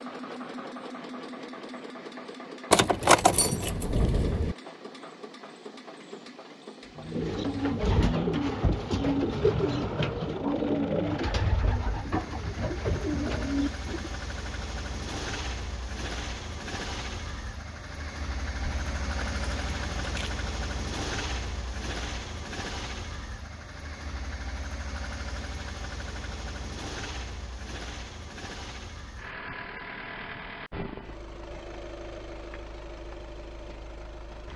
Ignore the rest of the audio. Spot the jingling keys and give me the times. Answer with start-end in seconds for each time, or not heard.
2.7-4.5, 18.6-20.3.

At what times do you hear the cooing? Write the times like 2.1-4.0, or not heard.
7.0-14.2.